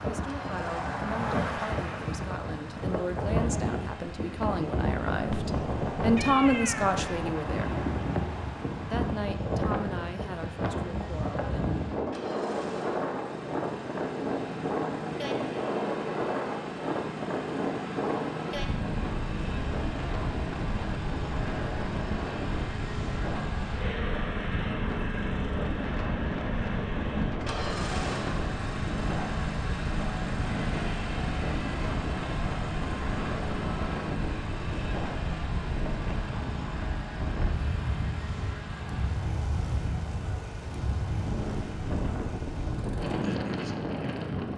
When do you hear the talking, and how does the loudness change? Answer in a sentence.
You can hear the talking from 0.0 to 7.8 s, getting louder; and briefly from 8.8 to 11.4 s.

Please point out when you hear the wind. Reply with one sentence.
The wind can be heard from 0.0 to 44.5 s.